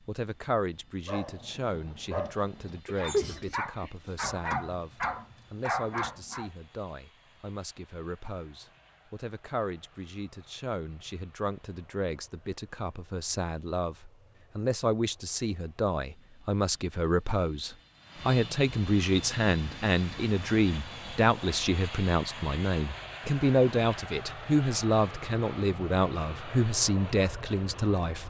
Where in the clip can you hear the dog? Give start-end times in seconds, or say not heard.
1.1-6.5.